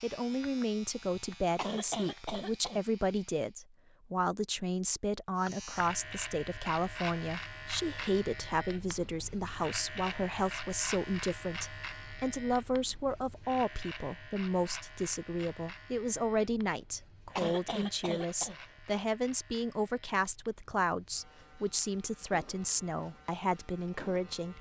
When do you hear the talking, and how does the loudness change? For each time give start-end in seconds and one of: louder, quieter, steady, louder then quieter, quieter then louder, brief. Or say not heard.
0.0-24.5 steady.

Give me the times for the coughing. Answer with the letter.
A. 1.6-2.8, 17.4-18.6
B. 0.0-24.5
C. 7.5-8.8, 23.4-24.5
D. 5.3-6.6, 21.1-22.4
A.